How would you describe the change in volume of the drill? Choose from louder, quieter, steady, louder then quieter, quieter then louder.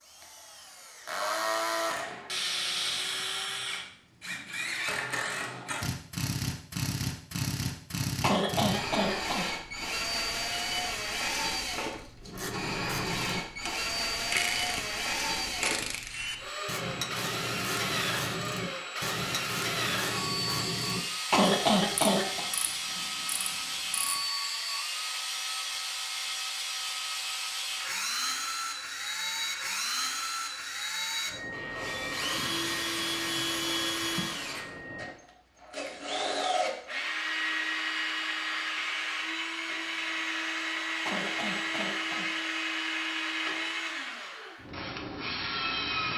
steady.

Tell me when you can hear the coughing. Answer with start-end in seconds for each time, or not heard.
8.2-9.4, 21.3-22.4, 41.0-42.2.